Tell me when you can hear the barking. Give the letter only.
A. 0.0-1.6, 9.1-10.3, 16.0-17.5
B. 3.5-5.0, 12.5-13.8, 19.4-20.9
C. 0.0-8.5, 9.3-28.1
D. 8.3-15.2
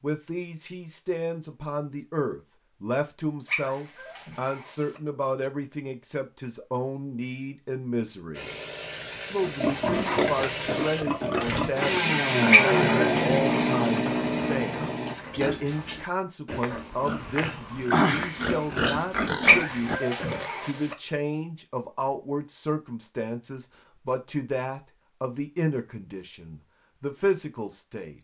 B.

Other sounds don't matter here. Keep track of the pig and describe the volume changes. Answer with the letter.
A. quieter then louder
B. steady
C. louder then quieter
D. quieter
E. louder
A.